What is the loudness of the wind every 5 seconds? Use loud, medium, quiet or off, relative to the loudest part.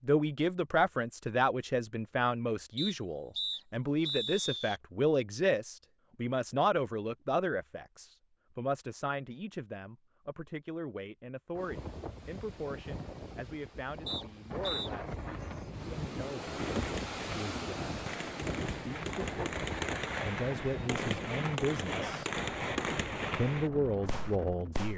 off, off, medium, loud, medium.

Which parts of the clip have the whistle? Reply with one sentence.
You can hear the whistle from 2.8 to 4.8 s and from 14.1 to 14.9 s.